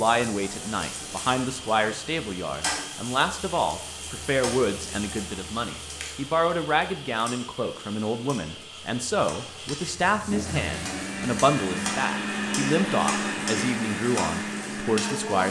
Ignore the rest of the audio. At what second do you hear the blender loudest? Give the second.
13 s.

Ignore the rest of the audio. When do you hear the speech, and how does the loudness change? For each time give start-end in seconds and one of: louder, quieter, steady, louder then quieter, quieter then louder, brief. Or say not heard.
0.0-15.4 steady.